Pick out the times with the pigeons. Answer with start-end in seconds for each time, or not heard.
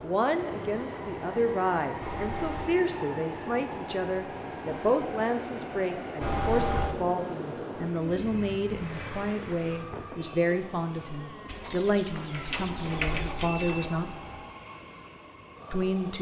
7.8-14.1.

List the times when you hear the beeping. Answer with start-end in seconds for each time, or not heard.
2.0-2.8, 6.2-6.9, 12.6-14.5.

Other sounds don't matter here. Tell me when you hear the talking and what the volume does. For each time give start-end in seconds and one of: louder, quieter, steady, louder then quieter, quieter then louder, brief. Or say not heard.
0.0-14.1 steady
15.7-16.1 brief.